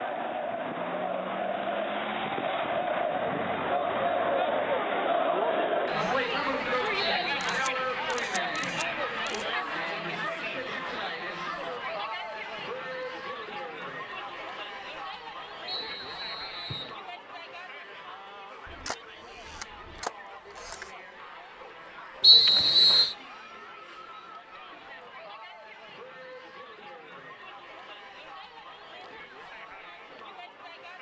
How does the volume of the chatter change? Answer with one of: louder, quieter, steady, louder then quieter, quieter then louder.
quieter.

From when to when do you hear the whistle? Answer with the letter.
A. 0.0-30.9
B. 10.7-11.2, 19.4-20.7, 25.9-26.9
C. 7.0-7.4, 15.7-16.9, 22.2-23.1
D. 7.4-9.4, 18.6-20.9
C.